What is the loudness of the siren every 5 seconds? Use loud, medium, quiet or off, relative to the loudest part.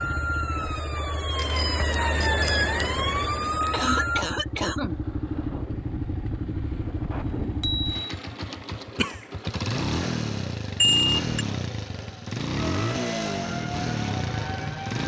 loud, off, medium.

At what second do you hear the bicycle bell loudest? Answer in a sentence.
The volume of the bicycle bell peaks at 11 seconds.